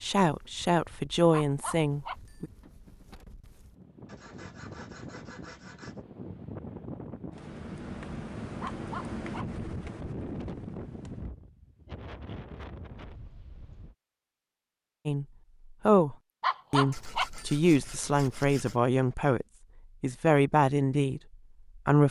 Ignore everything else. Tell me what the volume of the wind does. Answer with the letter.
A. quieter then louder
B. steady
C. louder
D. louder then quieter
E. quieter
D.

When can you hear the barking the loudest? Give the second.
17 s.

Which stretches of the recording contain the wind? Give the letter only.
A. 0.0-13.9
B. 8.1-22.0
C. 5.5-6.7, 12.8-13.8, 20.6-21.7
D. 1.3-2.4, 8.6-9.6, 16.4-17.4
A.